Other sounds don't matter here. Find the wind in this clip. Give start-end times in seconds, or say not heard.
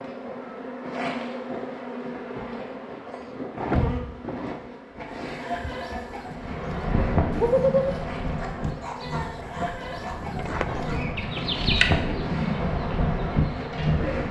6.2-14.2.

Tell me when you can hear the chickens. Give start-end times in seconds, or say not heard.
5.0-13.9.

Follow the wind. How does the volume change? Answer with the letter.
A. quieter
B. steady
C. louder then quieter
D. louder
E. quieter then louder
E.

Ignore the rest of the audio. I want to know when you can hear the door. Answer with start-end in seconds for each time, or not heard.
3.1-4.0, 10.3-11.3.